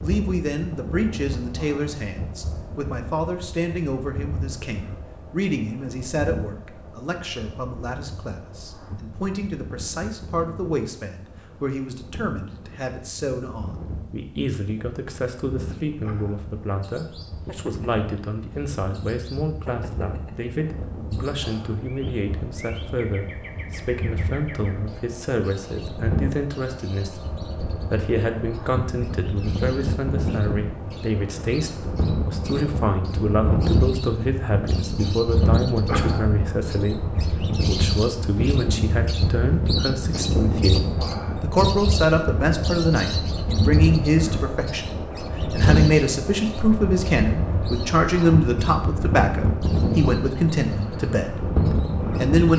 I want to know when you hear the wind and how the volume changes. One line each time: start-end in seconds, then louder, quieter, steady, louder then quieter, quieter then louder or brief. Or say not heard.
0.0-52.5 louder.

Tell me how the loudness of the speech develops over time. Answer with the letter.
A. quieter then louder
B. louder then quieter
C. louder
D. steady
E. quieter
C.